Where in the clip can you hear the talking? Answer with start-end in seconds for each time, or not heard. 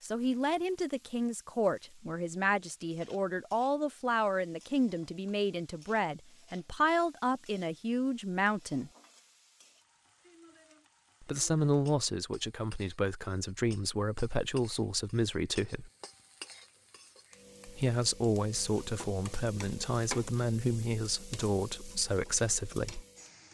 0.0-8.9, 11.2-15.9, 17.6-23.1.